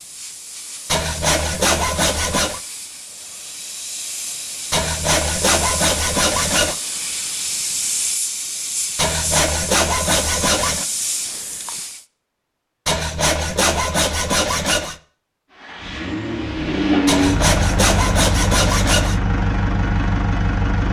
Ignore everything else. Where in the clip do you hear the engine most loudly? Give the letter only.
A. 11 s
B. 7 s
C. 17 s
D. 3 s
C.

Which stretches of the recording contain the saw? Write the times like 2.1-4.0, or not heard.
0.8-2.6, 4.7-6.8, 8.9-10.8, 12.8-14.9, 17.1-19.2.